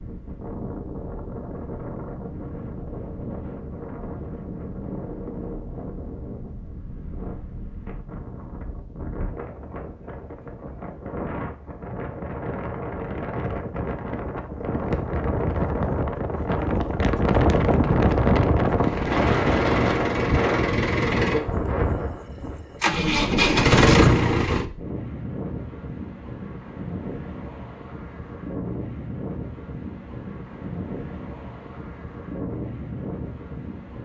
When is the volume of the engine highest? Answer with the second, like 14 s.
24 s.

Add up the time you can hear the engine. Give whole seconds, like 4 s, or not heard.
6 s.